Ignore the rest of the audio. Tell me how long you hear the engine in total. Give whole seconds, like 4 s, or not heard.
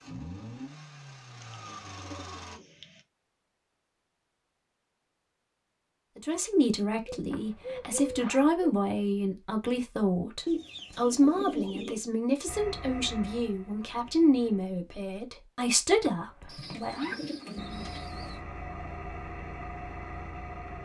8 s.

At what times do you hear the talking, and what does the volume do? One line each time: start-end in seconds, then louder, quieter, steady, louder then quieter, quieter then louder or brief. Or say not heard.
6.2-17.1 steady.